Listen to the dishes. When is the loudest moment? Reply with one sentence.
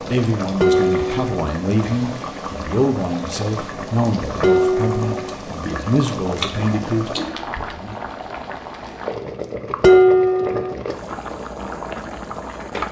The loudest moment of the dishes is at 10 seconds.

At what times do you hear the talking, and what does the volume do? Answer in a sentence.
The talking can be heard from 0.1 to 8.0 s, at a steady volume.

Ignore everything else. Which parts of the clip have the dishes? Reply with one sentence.
The dishes can be heard from 0.6 to 1.4 s, from 4.4 to 5.3 s and from 9.8 to 10.8 s.